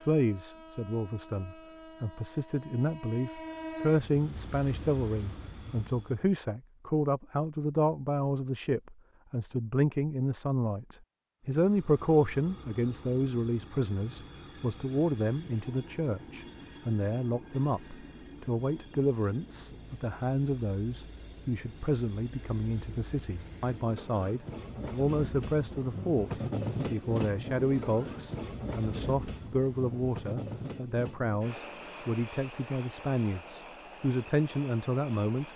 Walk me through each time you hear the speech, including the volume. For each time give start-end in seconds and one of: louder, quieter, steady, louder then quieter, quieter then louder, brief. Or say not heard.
0.0-35.5 steady.